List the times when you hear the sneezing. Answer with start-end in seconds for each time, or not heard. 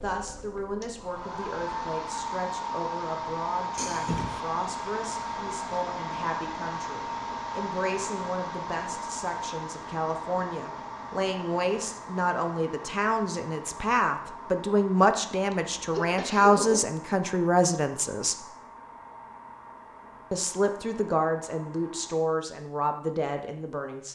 3.8-4.5, 15.5-16.8.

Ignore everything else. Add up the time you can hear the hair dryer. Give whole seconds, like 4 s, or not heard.
22 s.